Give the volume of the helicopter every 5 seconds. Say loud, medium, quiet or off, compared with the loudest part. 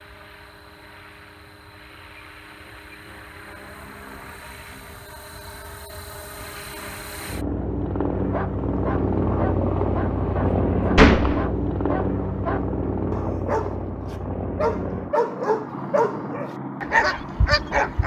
quiet, loud, loud, medium.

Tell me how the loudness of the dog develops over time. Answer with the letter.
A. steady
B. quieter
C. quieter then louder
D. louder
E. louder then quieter
D.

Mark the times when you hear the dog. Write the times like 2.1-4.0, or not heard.
8.2-18.0.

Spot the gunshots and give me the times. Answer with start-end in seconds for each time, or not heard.
10.9-11.4.